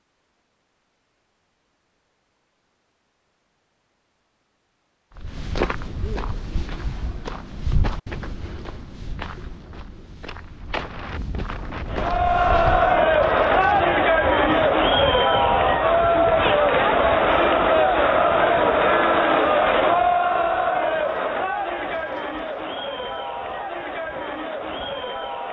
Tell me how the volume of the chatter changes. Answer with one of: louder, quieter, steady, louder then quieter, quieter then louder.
quieter.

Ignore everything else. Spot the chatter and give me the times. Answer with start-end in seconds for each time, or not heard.
11.8-25.4.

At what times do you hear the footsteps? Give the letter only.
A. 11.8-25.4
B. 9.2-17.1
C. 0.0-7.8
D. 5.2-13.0
D.